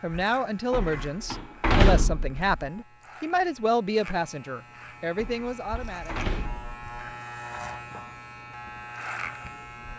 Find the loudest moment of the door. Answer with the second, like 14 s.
2 s.